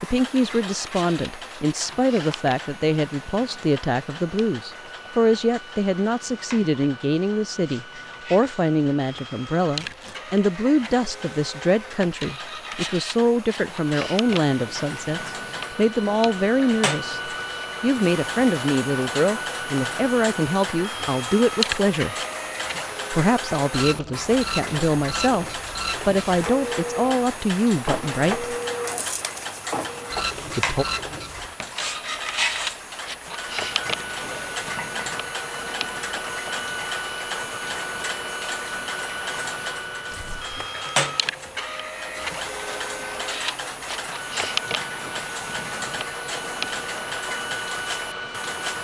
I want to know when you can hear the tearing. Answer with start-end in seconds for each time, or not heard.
9.8-10.3, 28.6-29.8, 40.0-40.6.